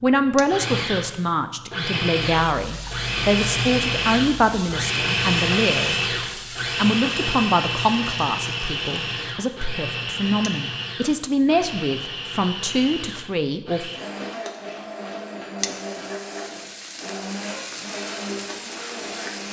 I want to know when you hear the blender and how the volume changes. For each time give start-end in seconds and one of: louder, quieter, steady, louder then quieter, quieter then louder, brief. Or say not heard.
0.0-19.4 quieter.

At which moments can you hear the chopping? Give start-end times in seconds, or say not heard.
not heard.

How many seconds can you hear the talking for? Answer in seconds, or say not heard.
13 s.